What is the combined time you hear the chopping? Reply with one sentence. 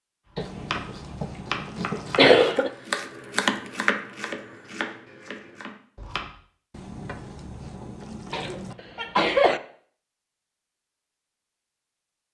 You can hear the chopping for 6 seconds altogether.